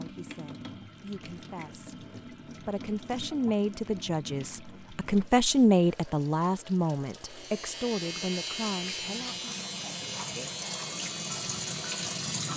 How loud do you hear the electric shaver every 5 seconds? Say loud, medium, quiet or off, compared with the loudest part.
off, loud, loud.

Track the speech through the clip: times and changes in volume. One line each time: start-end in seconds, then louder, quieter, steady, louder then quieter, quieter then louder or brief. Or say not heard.
0.0-9.5 louder then quieter.